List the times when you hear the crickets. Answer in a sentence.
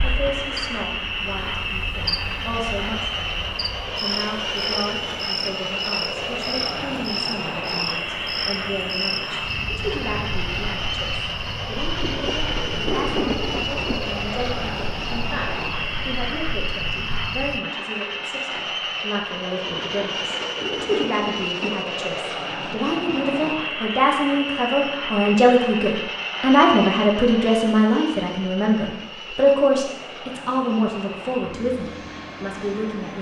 You can hear the crickets from 0.0 to 17.6 s.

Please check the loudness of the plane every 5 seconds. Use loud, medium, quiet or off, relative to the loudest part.
loud, loud, loud, loud, loud, loud, medium.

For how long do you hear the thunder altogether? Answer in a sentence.
You can hear the thunder for 4 seconds altogether.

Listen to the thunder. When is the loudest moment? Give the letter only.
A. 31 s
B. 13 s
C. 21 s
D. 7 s
B.